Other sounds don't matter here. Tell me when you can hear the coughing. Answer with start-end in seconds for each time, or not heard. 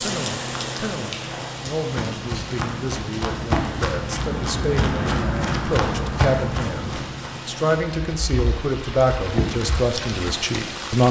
not heard.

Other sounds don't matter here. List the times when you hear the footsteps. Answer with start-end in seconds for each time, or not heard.
1.8-7.5.